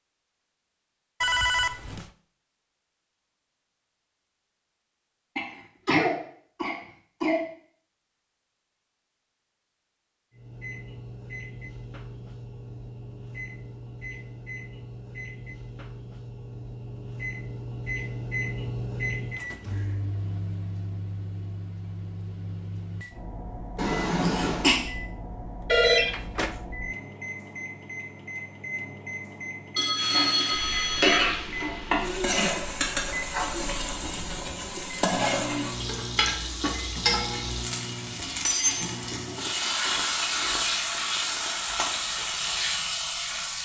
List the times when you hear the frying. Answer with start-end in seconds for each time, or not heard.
29.9-43.5.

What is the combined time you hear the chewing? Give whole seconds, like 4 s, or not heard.
not heard.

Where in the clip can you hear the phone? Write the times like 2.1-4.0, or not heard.
1.2-2.1, 25.6-26.6, 29.8-31.2.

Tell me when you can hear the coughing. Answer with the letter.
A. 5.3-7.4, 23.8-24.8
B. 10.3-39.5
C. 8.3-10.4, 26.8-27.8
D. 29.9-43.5
A.